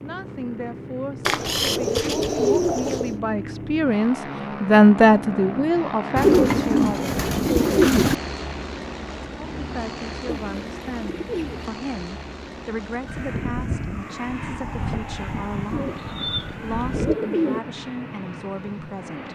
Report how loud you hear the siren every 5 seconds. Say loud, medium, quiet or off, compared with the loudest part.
off, off, loud, loud.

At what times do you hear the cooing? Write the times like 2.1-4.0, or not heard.
1.2-3.1, 6.2-8.2, 10.5-11.7, 15.7-17.6.